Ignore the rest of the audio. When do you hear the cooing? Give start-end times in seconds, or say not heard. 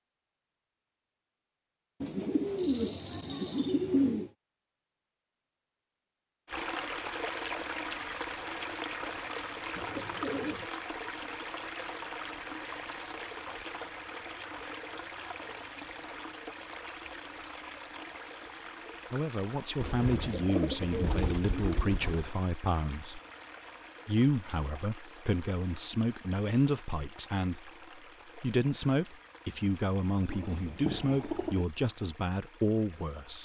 2.0-4.3, 9.8-10.7, 19.8-22.3, 30.2-31.6.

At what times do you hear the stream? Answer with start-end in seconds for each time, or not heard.
6.5-33.3.